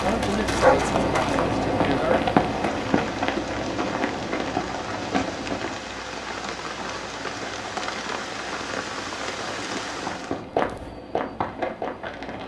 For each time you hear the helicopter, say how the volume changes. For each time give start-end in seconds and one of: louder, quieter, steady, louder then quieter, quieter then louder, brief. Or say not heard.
0.0-12.4 quieter.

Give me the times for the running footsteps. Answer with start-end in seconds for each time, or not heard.
0.0-5.8, 9.9-12.4.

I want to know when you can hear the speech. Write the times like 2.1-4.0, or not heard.
0.0-2.3.